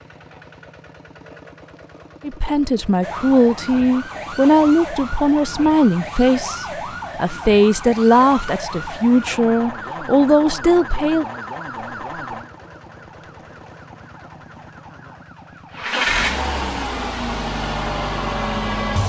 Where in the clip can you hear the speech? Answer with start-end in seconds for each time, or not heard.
2.2-11.2.